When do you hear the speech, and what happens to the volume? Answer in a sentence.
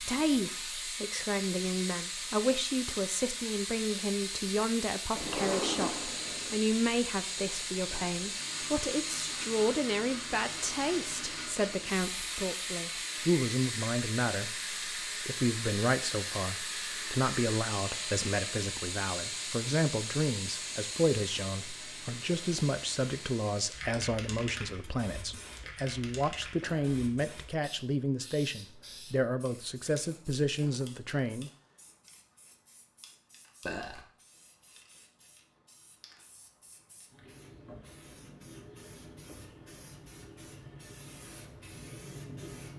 You can hear the speech from 0.0 to 31.5 s, at a steady volume.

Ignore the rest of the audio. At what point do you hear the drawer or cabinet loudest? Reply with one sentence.
The loudest moment of the drawer or cabinet is at 6 seconds.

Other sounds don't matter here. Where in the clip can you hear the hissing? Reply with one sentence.
You can hear the hissing from 0.0 to 42.7 s.